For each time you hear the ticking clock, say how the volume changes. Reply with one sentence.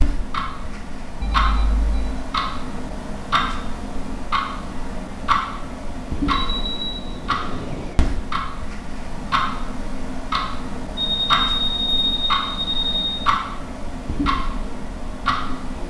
The ticking clock can be heard from 0.0 to 15.8 s, at a steady volume.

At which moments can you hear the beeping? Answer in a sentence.
You can hear the beeping from 1.2 to 2.1 s, from 6.2 to 8.0 s and from 10.9 to 13.3 s.